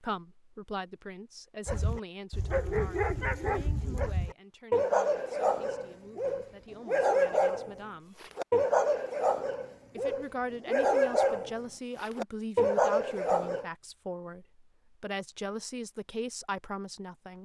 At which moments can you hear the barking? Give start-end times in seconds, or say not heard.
1.6-13.7.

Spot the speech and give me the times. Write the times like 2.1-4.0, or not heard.
0.0-8.3, 9.9-17.4.